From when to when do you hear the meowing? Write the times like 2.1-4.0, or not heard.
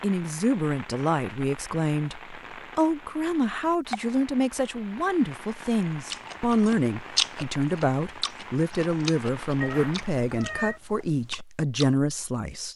9.6-10.8.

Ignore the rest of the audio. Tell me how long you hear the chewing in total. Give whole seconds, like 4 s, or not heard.
6 s.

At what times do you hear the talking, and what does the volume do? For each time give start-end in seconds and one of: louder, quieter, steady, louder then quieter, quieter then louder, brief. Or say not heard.
0.0-12.7 steady.